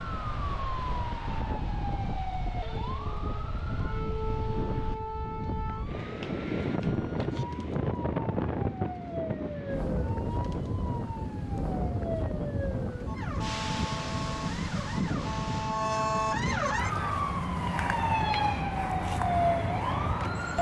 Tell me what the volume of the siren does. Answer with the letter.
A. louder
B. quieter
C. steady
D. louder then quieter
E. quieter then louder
A.